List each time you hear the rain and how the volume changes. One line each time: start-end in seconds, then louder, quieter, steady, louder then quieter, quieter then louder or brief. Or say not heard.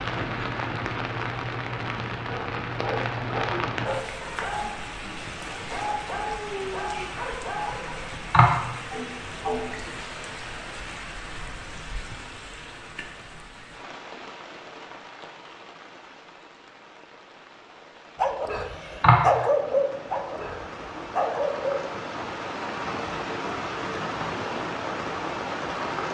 0.0-26.1 quieter then louder.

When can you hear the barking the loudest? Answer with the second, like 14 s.
19 s.